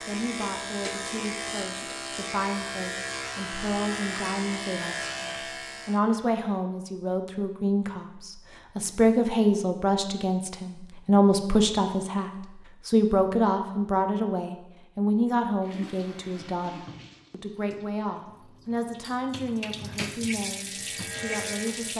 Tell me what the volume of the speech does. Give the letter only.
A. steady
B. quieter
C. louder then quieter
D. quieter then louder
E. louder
C.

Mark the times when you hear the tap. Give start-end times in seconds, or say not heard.
15.6-21.9.